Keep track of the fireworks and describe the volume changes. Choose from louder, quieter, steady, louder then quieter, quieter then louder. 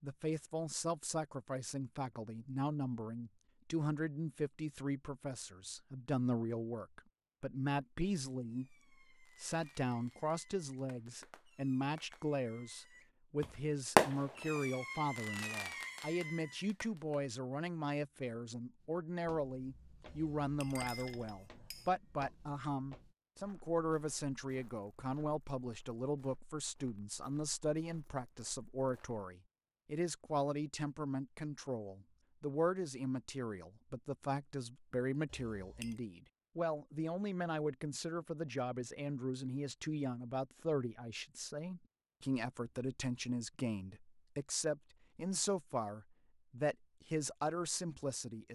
louder then quieter.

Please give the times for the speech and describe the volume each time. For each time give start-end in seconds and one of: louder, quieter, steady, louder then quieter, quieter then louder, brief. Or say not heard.
0.0-48.5 steady.